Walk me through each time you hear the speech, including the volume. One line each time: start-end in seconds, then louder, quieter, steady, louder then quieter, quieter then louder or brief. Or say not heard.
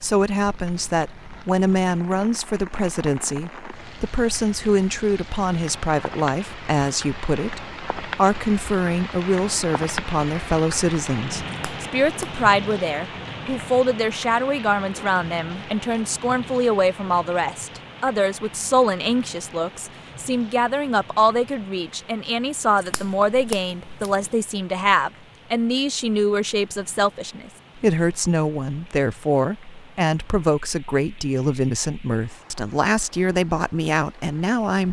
0.0-34.8 steady.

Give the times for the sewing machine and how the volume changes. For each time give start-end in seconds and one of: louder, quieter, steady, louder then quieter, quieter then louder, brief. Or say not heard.
not heard.